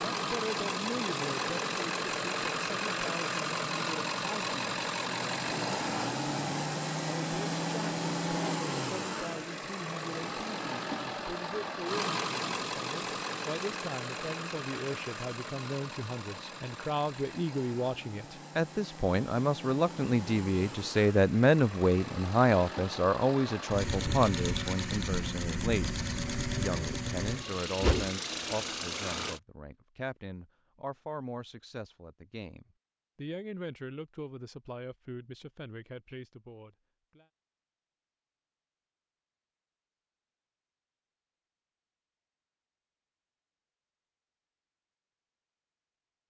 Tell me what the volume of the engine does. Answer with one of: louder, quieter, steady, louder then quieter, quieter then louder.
quieter then louder.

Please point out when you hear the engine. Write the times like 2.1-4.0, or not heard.
0.0-29.4.